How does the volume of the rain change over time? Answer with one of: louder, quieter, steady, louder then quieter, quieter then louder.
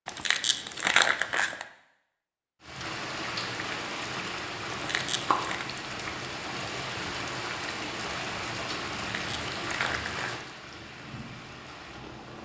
quieter.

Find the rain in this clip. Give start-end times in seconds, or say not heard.
2.6-12.4.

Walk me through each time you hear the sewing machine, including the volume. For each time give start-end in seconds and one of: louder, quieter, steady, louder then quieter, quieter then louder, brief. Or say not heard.
not heard.